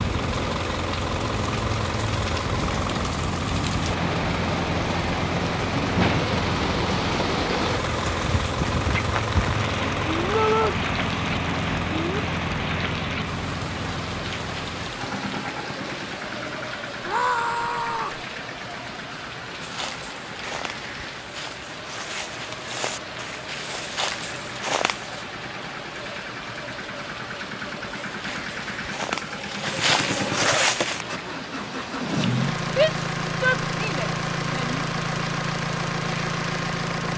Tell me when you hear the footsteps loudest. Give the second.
31 s.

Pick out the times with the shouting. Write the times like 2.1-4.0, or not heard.
10.3-10.8, 17.0-18.2, 32.8-34.9.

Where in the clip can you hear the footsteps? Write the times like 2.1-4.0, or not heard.
19.6-25.2, 28.1-31.1.